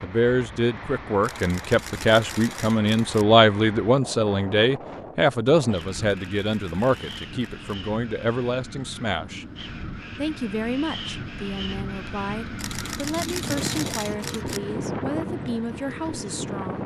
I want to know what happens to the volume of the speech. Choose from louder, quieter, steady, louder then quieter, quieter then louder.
quieter.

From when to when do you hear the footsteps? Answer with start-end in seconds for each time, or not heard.
not heard.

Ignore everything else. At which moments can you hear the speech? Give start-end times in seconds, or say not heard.
0.0-9.4, 10.2-16.8.